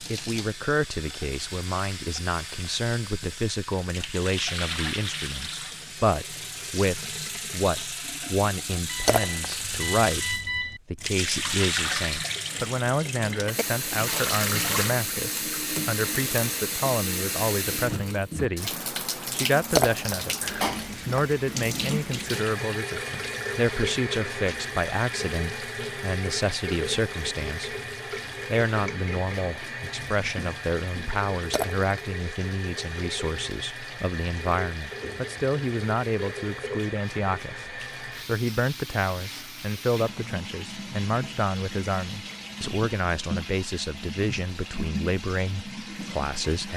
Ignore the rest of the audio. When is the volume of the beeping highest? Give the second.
10 s.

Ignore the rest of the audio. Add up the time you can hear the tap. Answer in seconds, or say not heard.
47 s.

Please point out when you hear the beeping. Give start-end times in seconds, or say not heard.
8.8-10.8.